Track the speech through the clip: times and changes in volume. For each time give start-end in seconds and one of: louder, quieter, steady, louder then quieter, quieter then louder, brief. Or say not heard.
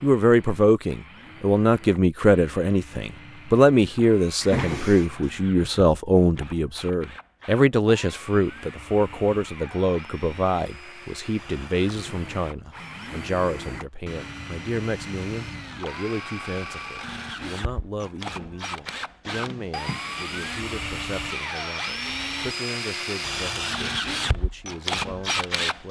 0.0-25.8 quieter.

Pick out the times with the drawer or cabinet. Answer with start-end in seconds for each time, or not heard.
4.4-5.2, 19.2-20.2.